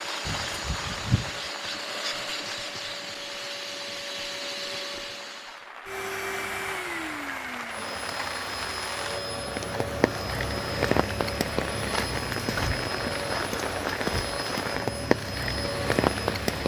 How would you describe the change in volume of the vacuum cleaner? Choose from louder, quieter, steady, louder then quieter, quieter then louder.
steady.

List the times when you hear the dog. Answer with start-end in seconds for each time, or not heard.
not heard.